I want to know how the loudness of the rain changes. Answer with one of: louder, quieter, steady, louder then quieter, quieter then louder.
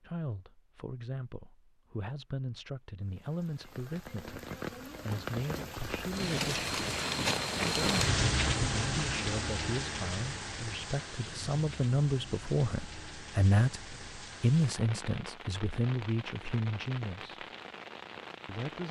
louder then quieter.